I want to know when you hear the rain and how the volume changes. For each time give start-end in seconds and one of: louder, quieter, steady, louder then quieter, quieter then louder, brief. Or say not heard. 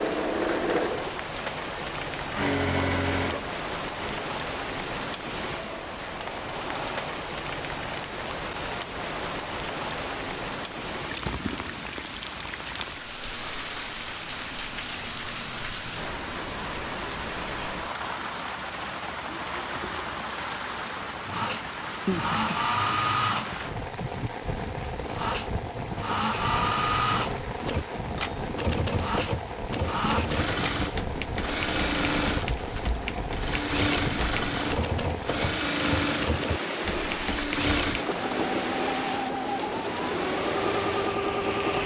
0.0-41.8 steady.